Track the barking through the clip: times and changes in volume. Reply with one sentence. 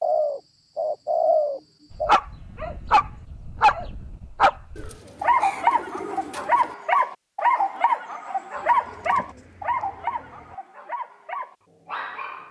You can hear the barking from 1.9 to 12.4 s, getting quieter.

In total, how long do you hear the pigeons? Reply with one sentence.
You can hear the pigeons for 6 seconds altogether.